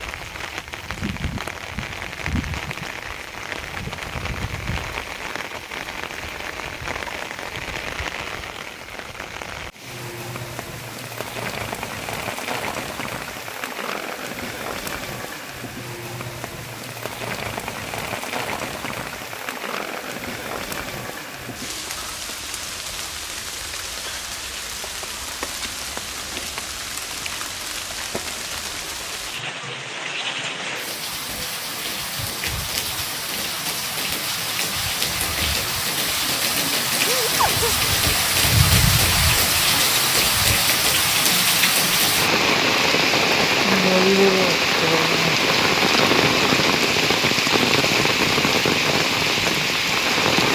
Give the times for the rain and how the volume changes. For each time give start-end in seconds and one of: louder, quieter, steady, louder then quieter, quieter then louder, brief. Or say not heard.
0.0-50.5 louder.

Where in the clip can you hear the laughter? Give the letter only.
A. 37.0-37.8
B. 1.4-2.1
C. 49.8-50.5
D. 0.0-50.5
A.